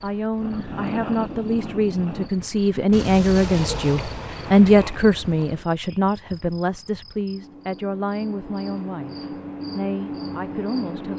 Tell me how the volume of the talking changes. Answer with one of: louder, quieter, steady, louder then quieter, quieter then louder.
louder then quieter.